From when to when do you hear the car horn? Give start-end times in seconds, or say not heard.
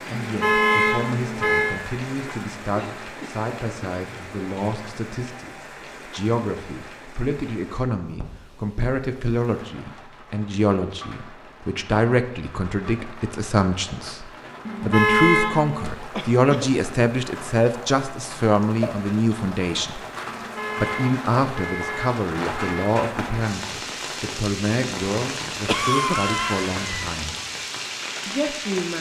0.1-1.8, 14.7-15.8, 20.2-22.9.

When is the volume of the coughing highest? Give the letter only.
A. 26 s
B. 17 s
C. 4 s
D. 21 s
A.